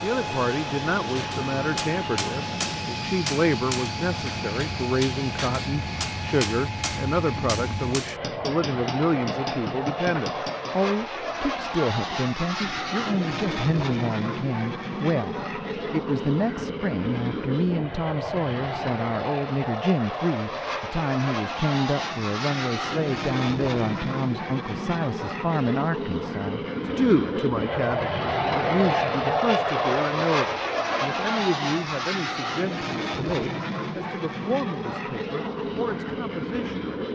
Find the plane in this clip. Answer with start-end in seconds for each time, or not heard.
0.0-37.1.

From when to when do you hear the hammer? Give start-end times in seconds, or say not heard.
1.1-10.8.